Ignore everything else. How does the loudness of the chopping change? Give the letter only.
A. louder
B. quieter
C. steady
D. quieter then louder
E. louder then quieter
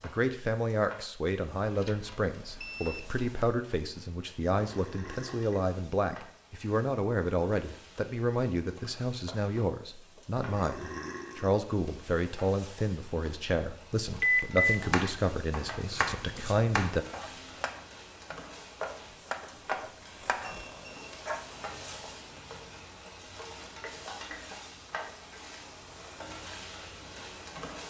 D.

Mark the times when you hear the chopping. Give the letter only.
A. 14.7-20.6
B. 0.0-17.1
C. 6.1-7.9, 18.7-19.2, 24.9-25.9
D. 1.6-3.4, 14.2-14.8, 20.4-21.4
A.